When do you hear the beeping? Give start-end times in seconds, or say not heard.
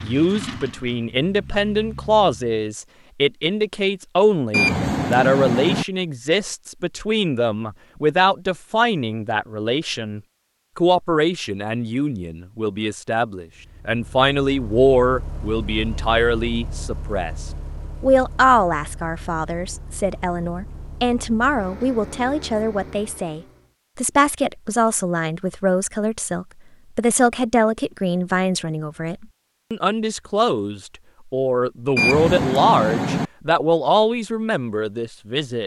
4.5-5.8, 31.9-33.3.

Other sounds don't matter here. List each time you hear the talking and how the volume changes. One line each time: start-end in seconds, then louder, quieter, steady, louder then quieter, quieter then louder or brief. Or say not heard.
0.0-35.6 steady.